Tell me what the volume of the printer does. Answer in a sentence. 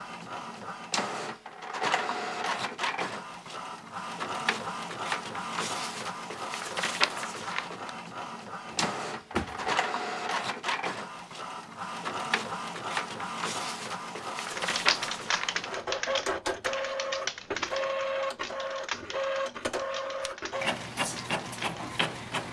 The volume of the printer stays about the same.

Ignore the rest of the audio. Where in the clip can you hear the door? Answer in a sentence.
You can hear the door from 8.7 to 9.8 s.